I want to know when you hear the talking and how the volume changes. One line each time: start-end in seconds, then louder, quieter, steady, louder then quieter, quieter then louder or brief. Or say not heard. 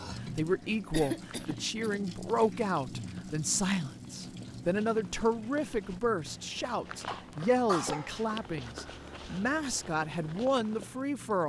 0.2-11.4 steady.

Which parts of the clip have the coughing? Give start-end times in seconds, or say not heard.
0.9-2.6, 7.0-8.3.